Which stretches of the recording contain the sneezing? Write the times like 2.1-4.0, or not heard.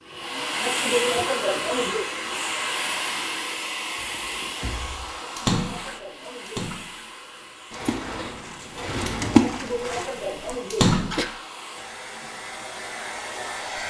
0.6-2.0, 5.2-6.8, 9.4-11.2.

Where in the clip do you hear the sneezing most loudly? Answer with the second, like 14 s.
1 s.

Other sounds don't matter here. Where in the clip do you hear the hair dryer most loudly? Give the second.
1 s.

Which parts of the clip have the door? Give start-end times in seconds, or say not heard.
4.0-5.2, 7.7-10.0.